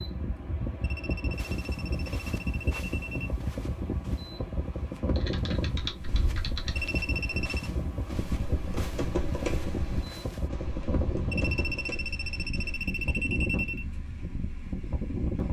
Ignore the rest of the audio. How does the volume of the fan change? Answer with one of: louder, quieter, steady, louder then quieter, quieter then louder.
steady.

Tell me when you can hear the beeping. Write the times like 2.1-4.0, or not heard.
0.8-3.4, 6.8-7.7, 11.3-13.8.